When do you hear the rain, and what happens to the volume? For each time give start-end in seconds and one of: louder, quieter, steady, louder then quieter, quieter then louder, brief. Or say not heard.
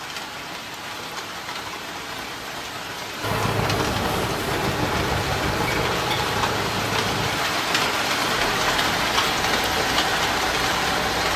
0.0-11.3 louder.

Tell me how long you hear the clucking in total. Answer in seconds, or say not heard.
not heard.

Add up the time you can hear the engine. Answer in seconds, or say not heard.
8 s.